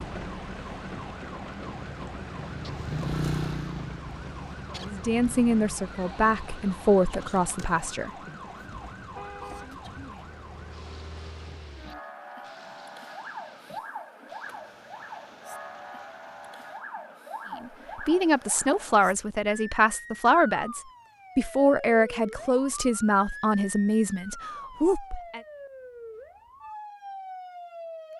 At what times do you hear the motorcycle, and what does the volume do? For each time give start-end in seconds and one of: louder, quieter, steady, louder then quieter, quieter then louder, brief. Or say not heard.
1.6-5.8 louder then quieter.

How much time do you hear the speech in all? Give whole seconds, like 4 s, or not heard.
11 s.